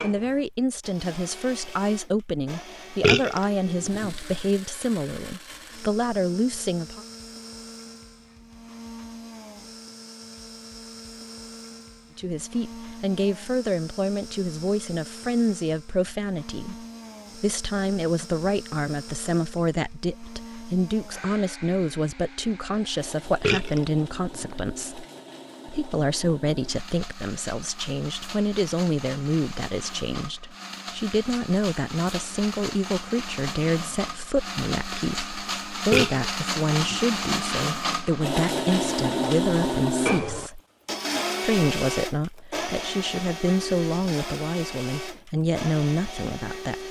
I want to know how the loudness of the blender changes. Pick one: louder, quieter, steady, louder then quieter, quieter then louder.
louder.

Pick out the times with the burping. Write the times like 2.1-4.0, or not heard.
3.0-4.2, 23.4-24.6, 35.9-37.0.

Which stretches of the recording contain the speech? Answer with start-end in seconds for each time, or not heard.
0.0-7.0, 12.2-25.1, 25.6-40.6, 41.4-46.8.